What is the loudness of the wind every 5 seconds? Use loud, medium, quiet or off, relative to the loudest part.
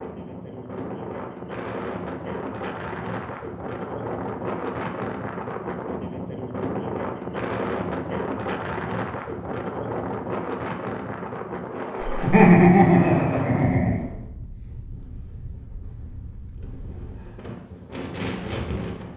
loud, loud, loud, medium.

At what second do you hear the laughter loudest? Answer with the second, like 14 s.
13 s.